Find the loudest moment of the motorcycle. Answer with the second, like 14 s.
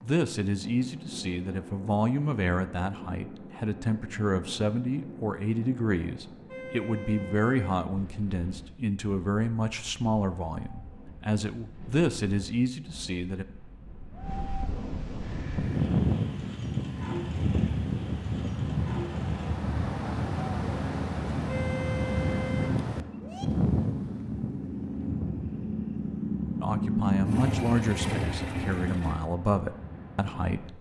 27 s.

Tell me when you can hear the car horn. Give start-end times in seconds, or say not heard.
6.5-7.8, 21.4-23.4.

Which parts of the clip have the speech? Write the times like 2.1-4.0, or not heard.
0.0-13.4, 26.6-30.7.